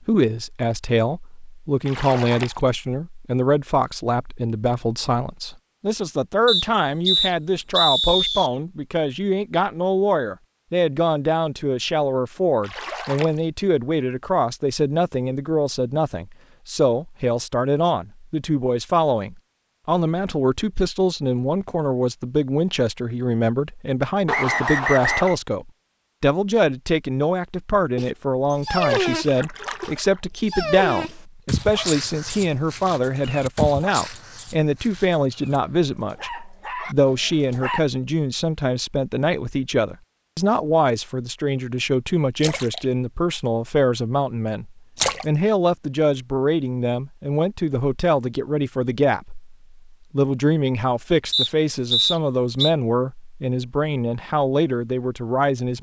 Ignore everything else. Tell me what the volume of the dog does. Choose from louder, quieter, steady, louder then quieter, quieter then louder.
quieter.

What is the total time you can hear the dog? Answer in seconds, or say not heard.
10 s.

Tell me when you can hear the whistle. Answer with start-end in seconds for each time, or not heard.
6.5-8.5, 24.2-25.4, 51.3-52.7.